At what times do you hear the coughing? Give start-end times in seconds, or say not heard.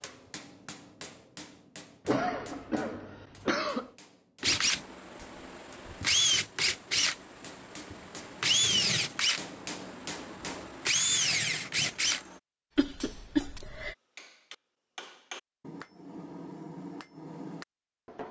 2.0-3.9, 12.8-13.9.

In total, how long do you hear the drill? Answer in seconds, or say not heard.
8 s.